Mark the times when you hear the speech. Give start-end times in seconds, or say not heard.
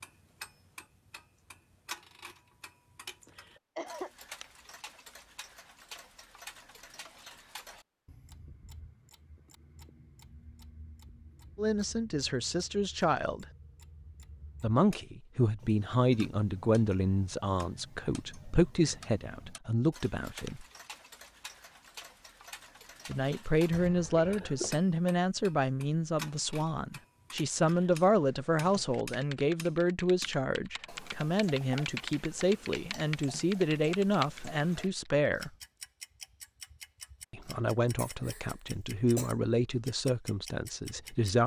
11.6-13.4, 14.6-20.6, 23.1-35.5, 37.3-41.4.